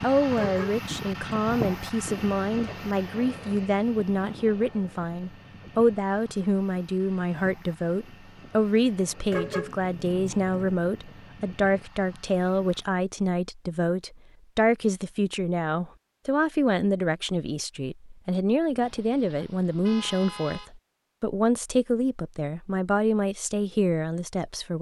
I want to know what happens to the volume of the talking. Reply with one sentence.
The loudness of the talking stays about the same.